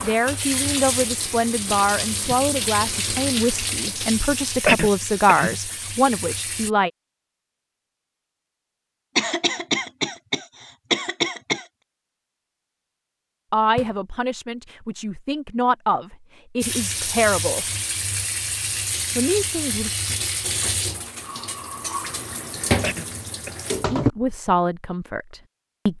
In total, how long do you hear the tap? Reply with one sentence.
The tap can be heard for 14 seconds in total.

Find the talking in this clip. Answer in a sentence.
You can hear the talking from 0.0 to 6.9 s, from 13.5 to 17.6 s, from 19.1 to 19.9 s and from 23.9 to 25.9 s.